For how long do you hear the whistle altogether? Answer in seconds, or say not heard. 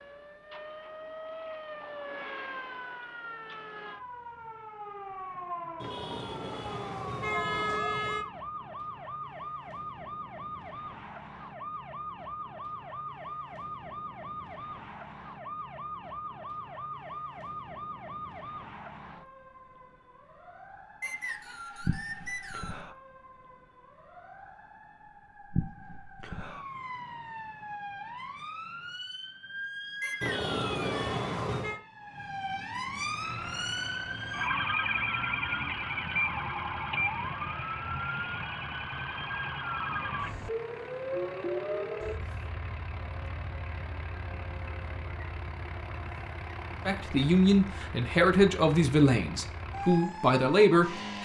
3 s.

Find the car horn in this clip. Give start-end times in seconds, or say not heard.
5.8-8.2, 30.2-31.8.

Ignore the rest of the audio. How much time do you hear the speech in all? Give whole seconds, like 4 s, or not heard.
4 s.